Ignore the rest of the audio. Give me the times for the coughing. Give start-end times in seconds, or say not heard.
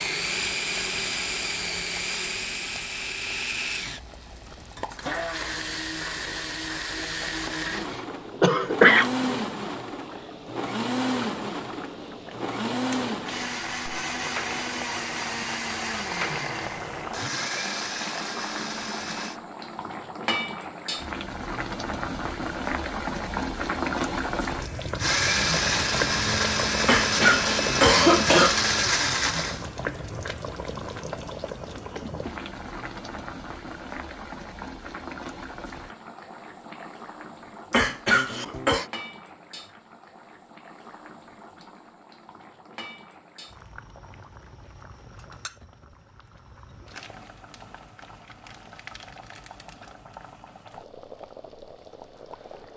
7.9-9.4, 26.9-28.6, 37.7-38.9.